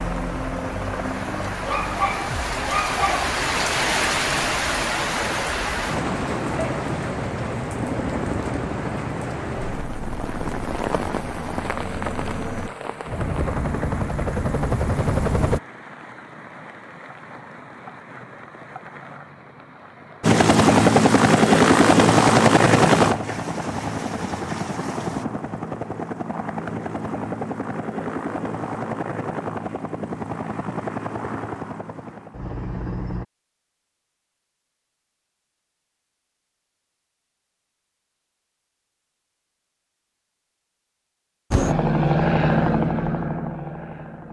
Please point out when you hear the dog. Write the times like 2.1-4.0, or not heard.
1.6-3.3.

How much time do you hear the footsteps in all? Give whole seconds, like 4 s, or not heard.
not heard.